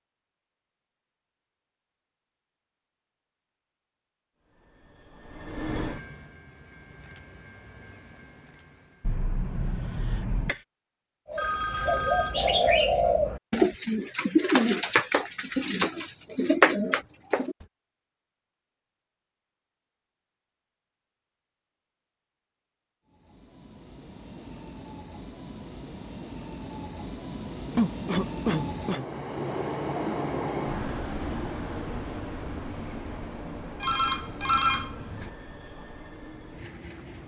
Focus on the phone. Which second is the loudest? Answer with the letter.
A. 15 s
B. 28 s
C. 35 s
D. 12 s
C.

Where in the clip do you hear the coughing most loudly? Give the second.
28 s.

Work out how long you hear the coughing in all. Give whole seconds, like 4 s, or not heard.
3 s.